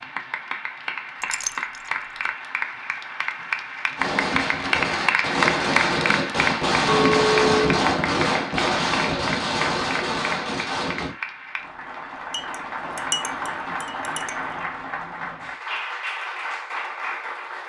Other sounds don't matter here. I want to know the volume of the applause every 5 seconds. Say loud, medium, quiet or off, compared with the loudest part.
loud, loud, medium, medium.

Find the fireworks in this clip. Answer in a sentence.
You can hear the fireworks from 4.0 to 11.2 s.